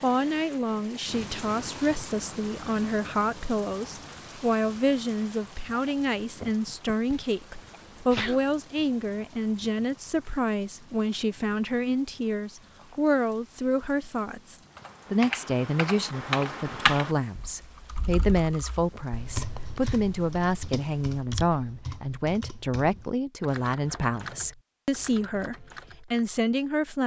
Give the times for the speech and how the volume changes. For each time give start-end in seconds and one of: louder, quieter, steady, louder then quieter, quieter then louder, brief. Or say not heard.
0.0-27.0 steady.